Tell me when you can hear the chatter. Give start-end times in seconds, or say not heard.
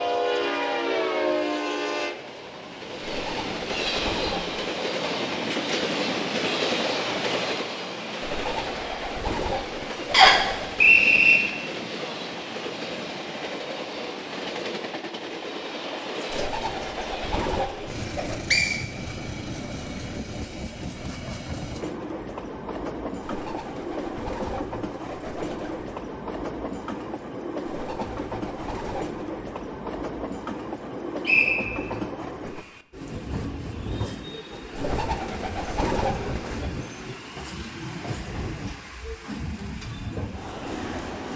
not heard.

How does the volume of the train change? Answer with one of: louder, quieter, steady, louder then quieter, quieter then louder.
quieter.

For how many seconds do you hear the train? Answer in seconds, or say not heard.
41 s.